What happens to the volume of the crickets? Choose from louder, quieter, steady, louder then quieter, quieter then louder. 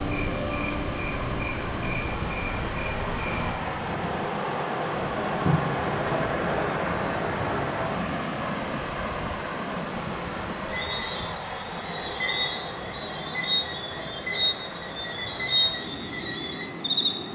quieter then louder.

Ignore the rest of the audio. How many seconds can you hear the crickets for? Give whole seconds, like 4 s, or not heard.
17 s.